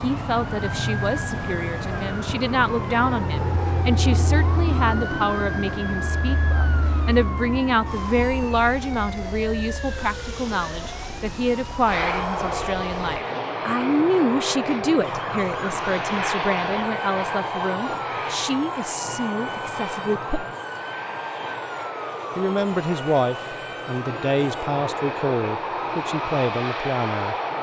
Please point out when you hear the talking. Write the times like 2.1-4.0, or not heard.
0.0-20.4, 22.4-27.4.